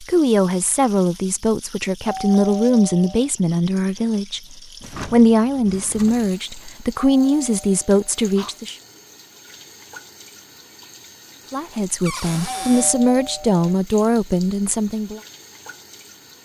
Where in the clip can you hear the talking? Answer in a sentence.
The talking can be heard from 0.0 to 8.8 s and from 11.5 to 15.2 s.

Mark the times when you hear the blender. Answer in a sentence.
You can't hear the blender here.